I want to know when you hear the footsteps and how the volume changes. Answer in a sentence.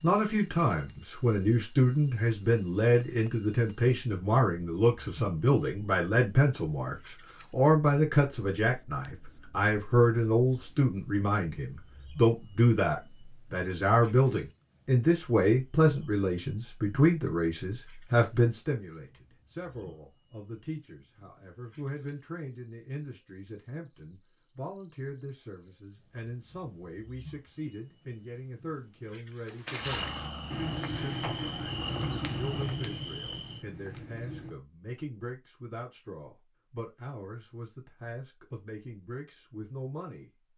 The footsteps can be heard from 29.4 to 34.5 s, getting quieter.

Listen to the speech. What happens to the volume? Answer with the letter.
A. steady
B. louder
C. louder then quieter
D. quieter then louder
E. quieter
E.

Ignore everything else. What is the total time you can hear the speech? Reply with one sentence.
You can hear the speech for 40 seconds altogether.